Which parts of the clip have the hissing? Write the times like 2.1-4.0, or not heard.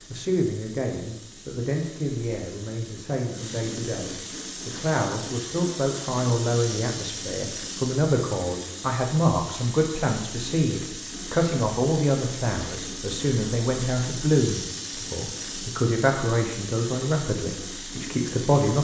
0.0-18.7.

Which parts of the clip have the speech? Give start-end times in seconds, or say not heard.
0.1-18.7.